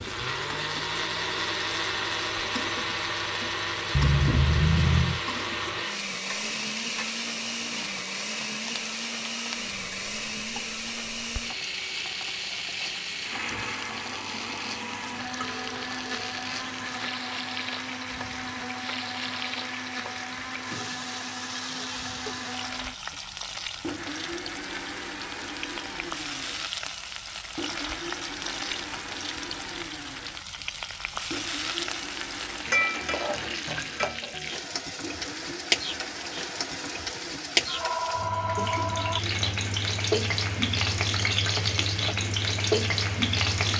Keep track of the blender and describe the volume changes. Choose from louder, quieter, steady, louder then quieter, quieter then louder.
quieter.